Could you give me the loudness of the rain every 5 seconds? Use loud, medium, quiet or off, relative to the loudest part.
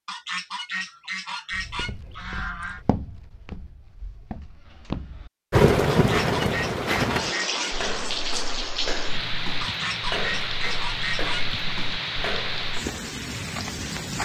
off, loud, medium.